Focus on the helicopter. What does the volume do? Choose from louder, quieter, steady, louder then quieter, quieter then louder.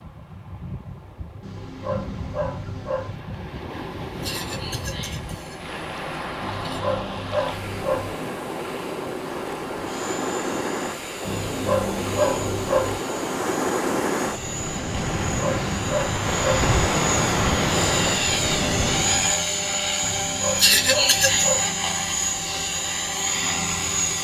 louder.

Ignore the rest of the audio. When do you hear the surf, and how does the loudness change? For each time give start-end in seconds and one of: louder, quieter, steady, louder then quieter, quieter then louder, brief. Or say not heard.
0.0-19.4 louder.